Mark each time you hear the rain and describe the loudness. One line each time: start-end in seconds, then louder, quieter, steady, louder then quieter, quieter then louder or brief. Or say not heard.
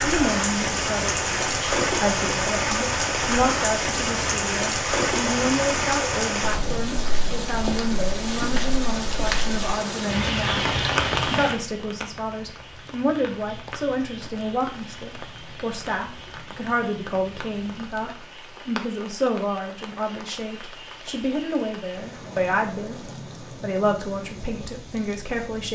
0.0-25.7 quieter.